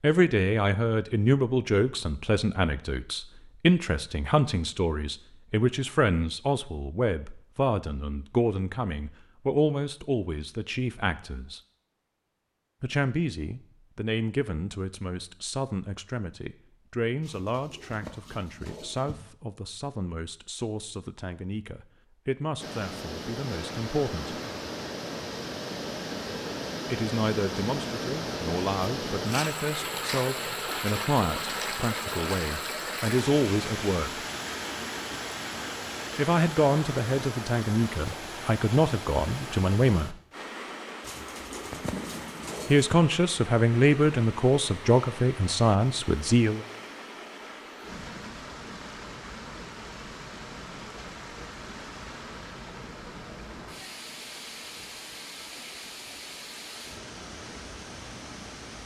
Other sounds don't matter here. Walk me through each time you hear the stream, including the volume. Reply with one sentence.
You can hear the stream from 22.6 to 58.8 s, getting quieter.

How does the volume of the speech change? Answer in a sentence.
The volume of the speech goes down, then up.